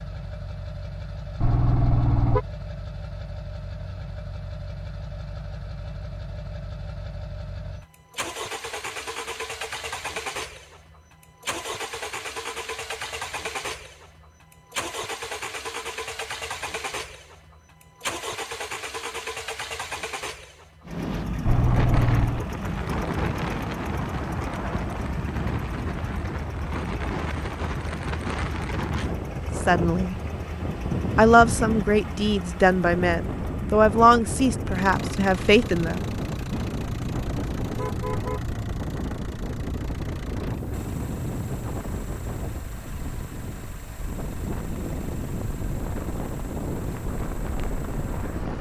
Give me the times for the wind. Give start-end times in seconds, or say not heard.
20.9-48.5.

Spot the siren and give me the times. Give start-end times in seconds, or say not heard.
not heard.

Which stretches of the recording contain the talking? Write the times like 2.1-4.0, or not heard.
29.6-30.1, 31.1-36.1.